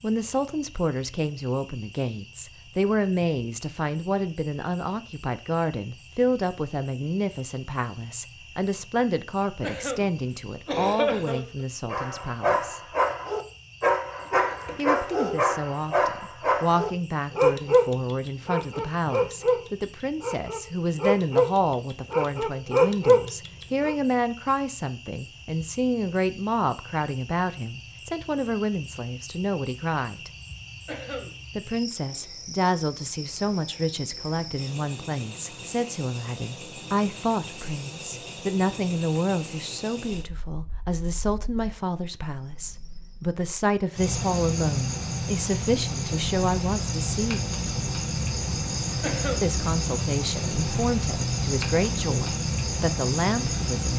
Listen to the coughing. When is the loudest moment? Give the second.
11 s.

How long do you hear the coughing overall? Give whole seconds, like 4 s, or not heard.
3 s.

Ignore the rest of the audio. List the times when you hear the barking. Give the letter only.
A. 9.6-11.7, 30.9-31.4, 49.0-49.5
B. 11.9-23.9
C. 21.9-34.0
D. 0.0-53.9
B.